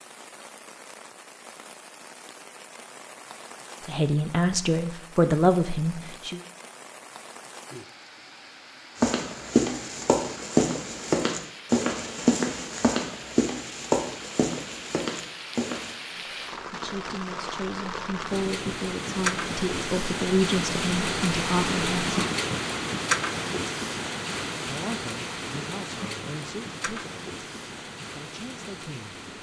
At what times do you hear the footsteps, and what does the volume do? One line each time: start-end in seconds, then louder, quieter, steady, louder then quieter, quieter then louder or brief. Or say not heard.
8.9-15.9 quieter.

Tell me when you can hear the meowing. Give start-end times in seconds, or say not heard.
not heard.